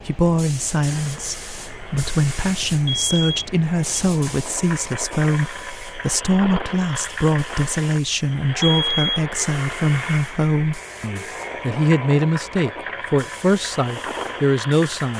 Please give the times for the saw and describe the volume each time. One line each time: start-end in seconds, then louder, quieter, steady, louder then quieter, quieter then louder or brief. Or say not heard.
not heard.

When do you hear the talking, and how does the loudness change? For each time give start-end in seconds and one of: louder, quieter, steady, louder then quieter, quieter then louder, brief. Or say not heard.
0.1-15.1 steady.